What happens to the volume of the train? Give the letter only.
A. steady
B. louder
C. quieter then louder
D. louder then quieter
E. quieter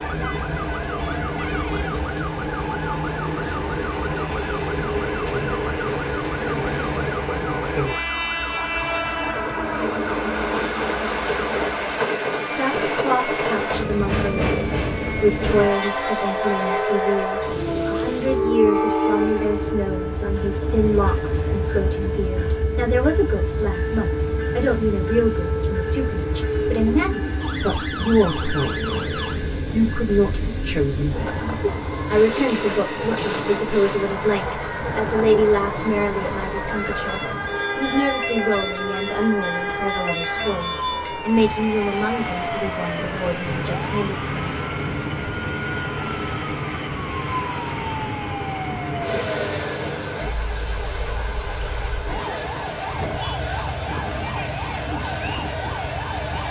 E.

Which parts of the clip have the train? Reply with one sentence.
You can hear the train from 0.0 to 56.4 s.